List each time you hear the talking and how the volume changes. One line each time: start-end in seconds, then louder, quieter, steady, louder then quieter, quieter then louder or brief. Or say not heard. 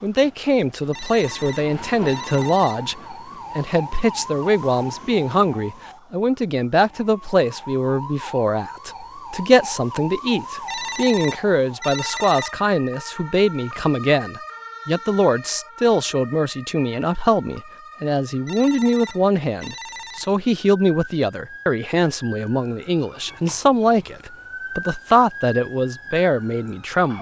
0.0-27.1 steady.